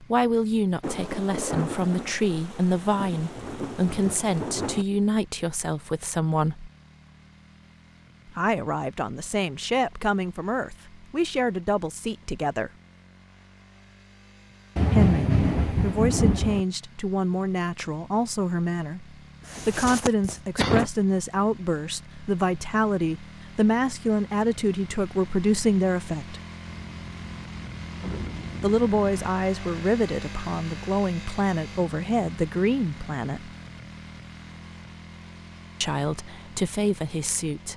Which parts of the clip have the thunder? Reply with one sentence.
You can hear the thunder from 0.8 to 4.8 s, from 14.8 to 16.6 s and from 26.6 to 29.3 s.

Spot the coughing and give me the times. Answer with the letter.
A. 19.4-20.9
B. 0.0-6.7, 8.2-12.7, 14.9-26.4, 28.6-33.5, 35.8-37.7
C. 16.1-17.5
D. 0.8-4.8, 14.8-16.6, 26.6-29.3
A.